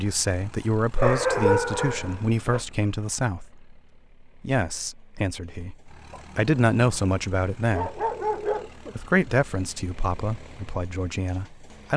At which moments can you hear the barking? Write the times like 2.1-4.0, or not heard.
0.9-2.6, 6.1-8.9.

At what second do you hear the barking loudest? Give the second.
1 s.